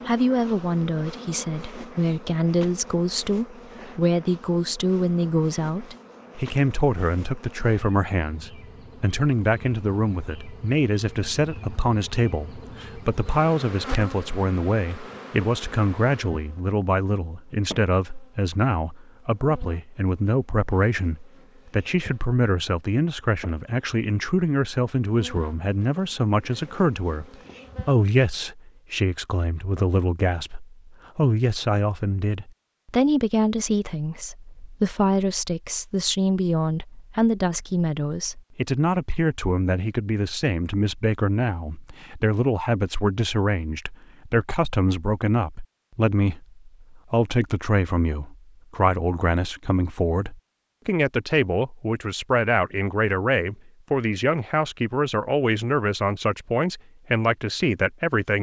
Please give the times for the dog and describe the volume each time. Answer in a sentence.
The dog can't be heard in this clip.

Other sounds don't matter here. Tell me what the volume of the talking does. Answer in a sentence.
The loudness of the talking stays about the same.